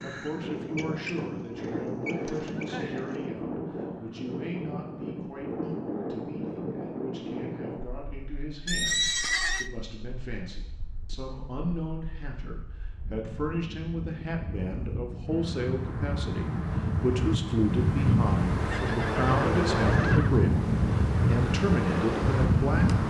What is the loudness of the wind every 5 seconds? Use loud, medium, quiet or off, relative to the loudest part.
medium, medium, quiet, loud, loud.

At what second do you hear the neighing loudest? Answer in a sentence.
The loudest moment of the neighing is at 9 seconds.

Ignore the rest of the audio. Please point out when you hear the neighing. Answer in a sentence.
You can hear the neighing from 1.6 to 3.1 s, from 8.7 to 9.7 s and from 18.7 to 20.4 s.